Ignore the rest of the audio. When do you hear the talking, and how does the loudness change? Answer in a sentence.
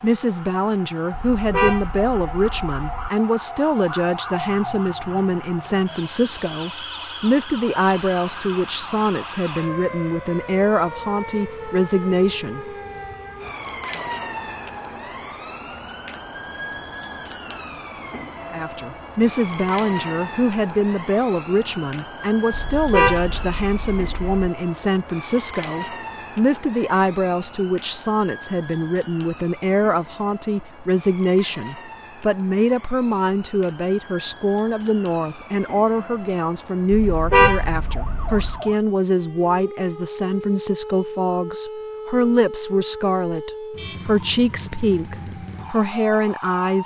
You can hear the talking from 0.0 to 12.7 s, at a steady volume; and from 18.5 to 46.8 s, at a steady volume.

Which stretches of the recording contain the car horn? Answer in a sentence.
The car horn can be heard from 1.1 to 3.1 s, from 22.5 to 24.4 s and from 36.9 to 38.6 s.